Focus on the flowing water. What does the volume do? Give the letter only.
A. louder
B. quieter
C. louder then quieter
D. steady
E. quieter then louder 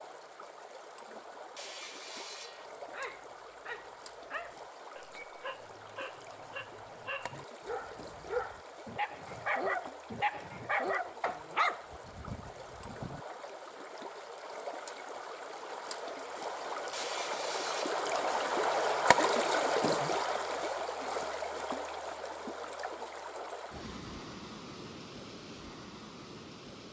C.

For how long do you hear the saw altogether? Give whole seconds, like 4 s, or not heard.
2 s.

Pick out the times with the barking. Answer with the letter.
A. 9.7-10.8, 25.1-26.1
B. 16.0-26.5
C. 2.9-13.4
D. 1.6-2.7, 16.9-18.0
C.